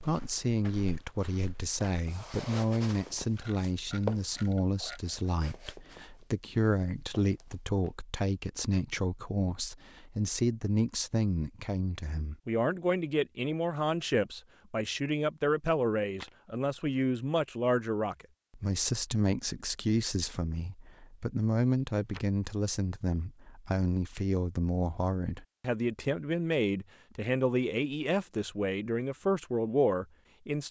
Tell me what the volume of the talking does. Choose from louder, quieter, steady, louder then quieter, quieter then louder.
steady.